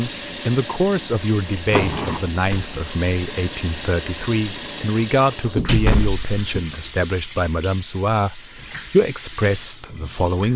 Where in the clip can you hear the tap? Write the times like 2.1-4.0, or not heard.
0.0-10.5.